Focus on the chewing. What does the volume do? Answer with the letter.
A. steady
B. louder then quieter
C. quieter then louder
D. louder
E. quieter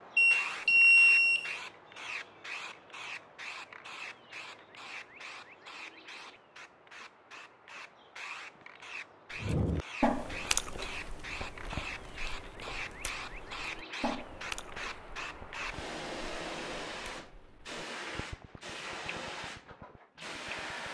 E.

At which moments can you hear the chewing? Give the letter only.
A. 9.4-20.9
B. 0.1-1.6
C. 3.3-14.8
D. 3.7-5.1
A.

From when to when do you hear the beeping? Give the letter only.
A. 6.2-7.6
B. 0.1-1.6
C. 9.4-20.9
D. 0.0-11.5
B.